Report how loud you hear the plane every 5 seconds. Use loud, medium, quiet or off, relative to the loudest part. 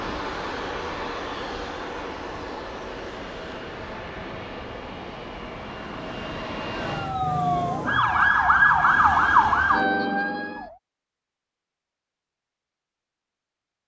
loud, loud, off.